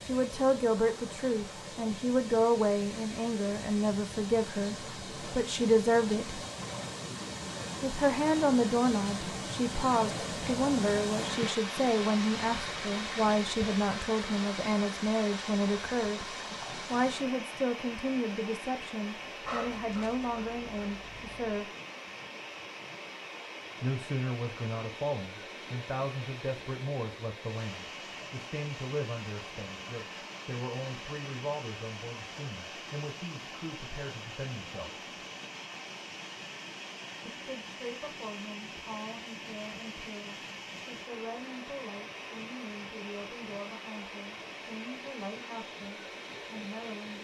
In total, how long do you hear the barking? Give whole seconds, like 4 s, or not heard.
2 s.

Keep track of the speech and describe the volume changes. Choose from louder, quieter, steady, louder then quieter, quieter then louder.
quieter.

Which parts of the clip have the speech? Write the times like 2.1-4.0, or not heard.
0.1-6.5, 7.8-21.7, 23.8-35.0, 37.2-47.1.